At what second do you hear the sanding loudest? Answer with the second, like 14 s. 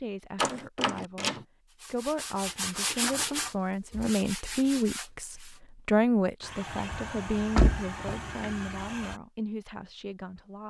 3 s.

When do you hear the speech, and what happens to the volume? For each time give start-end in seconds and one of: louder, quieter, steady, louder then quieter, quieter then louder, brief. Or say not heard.
0.0-10.6 louder then quieter.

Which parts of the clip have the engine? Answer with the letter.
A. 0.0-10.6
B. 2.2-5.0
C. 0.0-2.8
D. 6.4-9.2
D.